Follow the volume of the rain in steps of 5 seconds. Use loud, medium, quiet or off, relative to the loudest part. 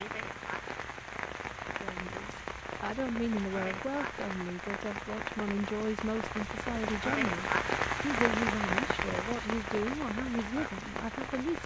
medium, loud, medium.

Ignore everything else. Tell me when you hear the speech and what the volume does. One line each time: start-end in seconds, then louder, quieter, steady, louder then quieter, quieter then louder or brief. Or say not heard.
1.8-11.6 steady.